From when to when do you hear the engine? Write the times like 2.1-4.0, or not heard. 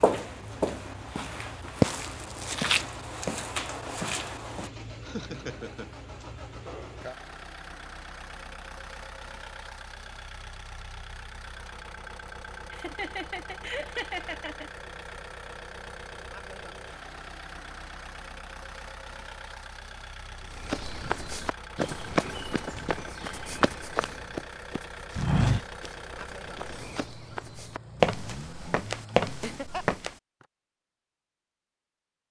0.0-29.6.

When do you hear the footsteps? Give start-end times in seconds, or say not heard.
0.0-4.7, 20.6-30.1.